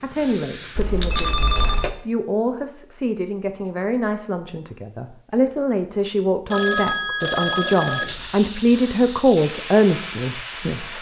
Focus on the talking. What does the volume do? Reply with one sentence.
The volume of the talking goes up.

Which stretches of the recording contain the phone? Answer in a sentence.
You can hear the phone from 0.8 to 1.9 s and from 6.5 to 8.2 s.